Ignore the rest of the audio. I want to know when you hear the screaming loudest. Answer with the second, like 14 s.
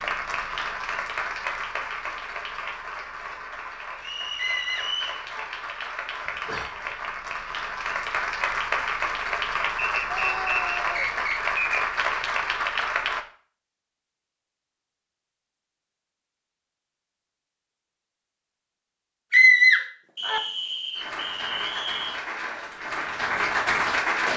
20 s.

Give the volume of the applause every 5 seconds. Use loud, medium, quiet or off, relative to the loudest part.
medium, loud, loud, off, loud.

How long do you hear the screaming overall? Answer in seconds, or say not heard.
3 s.